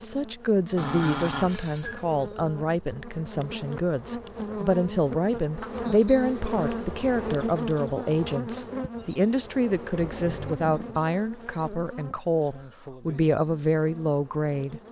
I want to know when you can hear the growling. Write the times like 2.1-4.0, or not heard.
0.8-2.0, 9.9-11.1.